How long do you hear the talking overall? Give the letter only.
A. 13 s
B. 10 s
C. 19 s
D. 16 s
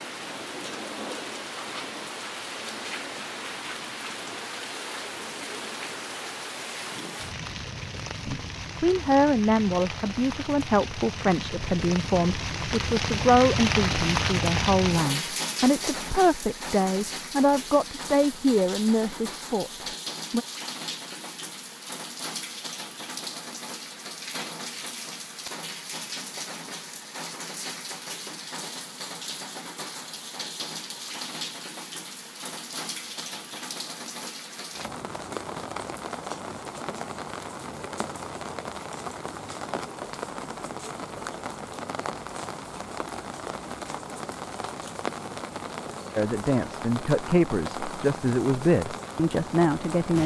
D.